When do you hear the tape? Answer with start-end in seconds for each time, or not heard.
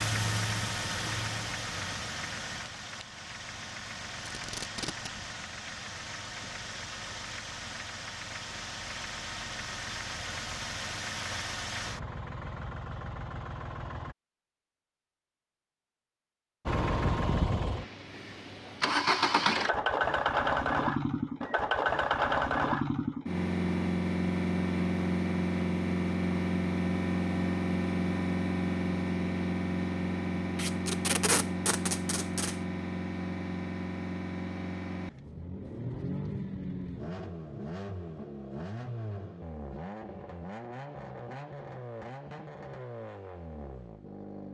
4.2-5.1, 30.6-32.5.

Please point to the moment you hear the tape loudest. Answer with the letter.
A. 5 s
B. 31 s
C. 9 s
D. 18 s
B.